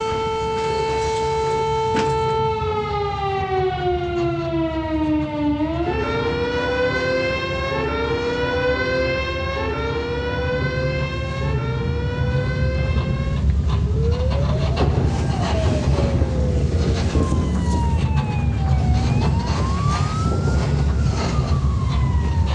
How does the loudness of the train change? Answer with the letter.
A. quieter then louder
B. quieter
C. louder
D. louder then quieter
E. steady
C.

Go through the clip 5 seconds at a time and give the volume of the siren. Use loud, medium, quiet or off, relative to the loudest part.
loud, loud, medium, medium, quiet.